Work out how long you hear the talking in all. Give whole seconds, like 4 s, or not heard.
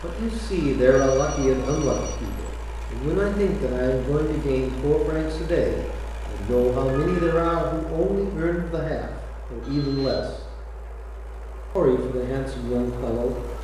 12 s.